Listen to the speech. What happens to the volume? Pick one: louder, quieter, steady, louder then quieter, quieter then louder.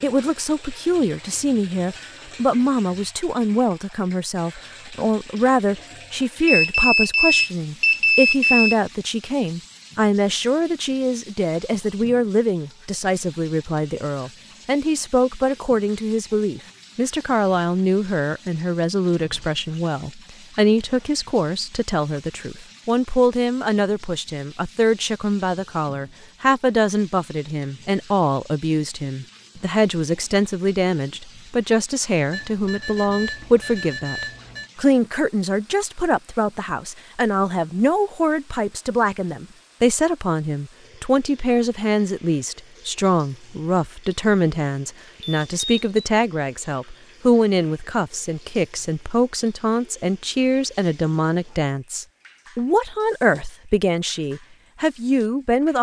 steady.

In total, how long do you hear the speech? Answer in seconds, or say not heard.
56 s.